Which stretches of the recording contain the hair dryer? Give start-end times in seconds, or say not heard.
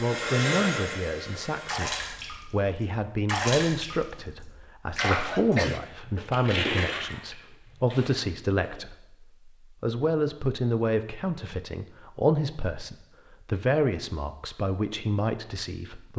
0.0-2.3.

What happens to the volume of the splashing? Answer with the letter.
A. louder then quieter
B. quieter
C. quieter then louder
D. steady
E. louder
A.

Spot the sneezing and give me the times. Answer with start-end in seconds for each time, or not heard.
4.8-5.8.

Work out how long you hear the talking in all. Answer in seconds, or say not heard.
16 s.